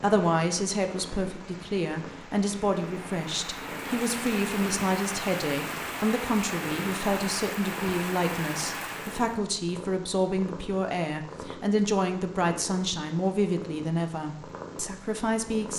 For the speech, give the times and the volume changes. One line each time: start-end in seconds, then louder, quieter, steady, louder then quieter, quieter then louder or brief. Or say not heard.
0.0-15.7 steady.